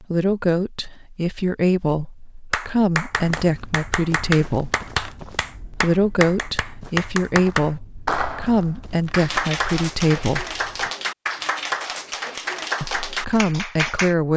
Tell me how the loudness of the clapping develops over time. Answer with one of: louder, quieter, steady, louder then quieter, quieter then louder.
steady.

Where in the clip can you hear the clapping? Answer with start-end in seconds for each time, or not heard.
2.5-14.2.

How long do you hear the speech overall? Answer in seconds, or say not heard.
11 s.